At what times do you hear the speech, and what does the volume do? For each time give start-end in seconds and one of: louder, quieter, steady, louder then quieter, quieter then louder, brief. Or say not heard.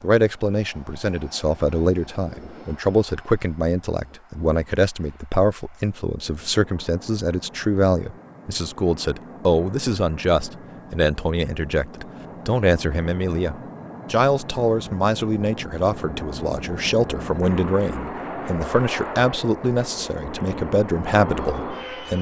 0.0-22.1 steady.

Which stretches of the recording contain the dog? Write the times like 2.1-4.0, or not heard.
not heard.